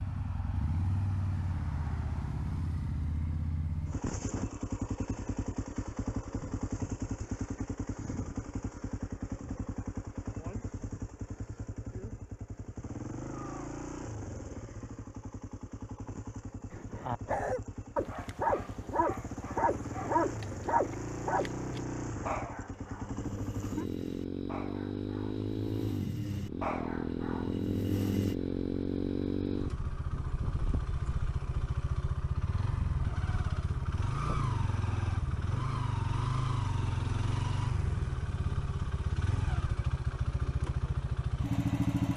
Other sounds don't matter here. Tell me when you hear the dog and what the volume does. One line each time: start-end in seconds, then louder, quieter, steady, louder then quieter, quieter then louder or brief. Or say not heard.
16.7-28.4 quieter then louder.